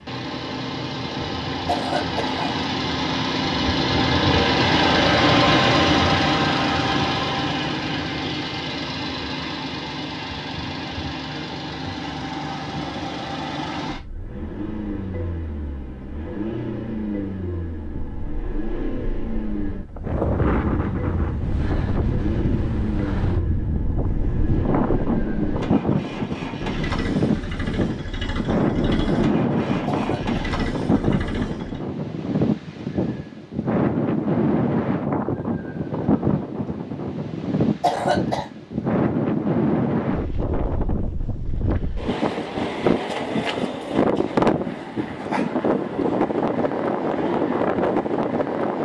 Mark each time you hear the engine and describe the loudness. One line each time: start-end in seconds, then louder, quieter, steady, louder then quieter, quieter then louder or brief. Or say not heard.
0.0-31.9 quieter.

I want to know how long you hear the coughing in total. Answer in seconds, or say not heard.
2 s.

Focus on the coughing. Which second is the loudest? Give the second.
38 s.